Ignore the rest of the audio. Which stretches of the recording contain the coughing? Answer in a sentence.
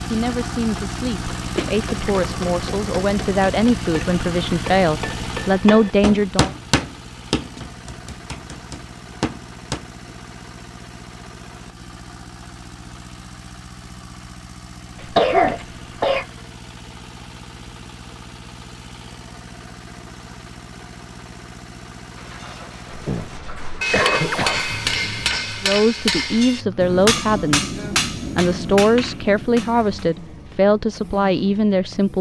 The coughing can be heard from 1.6 to 2.3 s, from 15.2 to 16.2 s and from 23.1 to 24.6 s.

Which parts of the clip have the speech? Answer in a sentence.
The speech can be heard from 0.1 to 6.5 s and from 25.6 to 32.1 s.